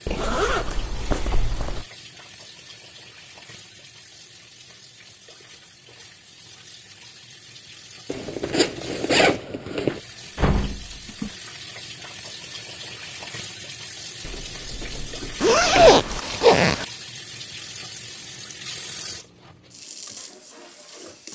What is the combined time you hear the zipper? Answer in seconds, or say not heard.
5 s.